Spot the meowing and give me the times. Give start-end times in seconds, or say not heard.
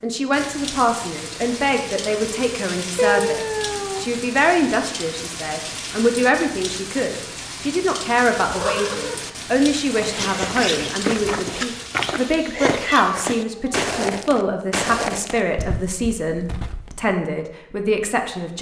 3.0-4.1, 8.4-9.2, 12.8-13.8.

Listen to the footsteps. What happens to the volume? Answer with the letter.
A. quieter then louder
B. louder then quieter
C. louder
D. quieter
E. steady
D.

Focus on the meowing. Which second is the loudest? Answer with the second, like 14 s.
3 s.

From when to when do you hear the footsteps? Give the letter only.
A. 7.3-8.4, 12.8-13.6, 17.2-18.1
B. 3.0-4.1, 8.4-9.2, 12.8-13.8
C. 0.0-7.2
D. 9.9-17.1
D.